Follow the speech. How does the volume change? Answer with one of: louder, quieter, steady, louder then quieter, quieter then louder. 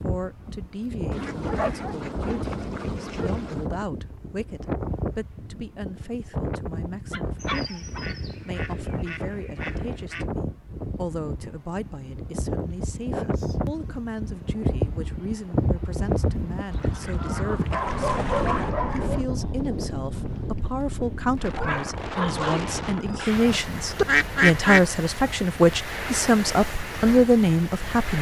louder.